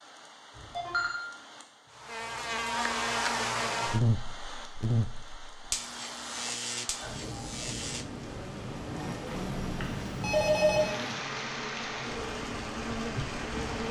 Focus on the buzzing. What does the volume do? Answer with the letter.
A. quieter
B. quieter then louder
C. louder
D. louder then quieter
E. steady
A.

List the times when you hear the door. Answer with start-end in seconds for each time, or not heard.
not heard.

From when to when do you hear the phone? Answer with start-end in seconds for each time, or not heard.
0.6-1.2, 9.2-10.9.